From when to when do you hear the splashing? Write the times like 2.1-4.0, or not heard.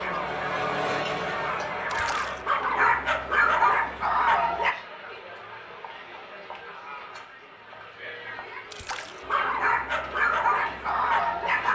1.9-2.5, 8.7-9.2.